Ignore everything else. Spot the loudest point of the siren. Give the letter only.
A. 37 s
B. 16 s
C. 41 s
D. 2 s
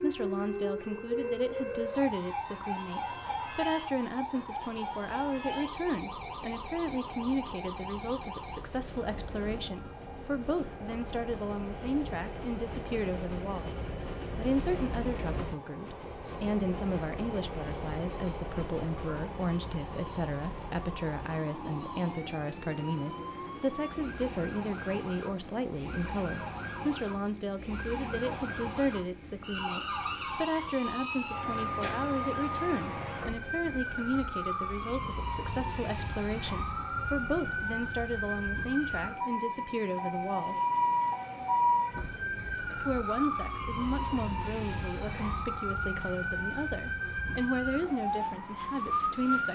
C.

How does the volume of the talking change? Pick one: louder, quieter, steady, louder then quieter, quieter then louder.
steady.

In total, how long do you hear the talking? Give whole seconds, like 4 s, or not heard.
47 s.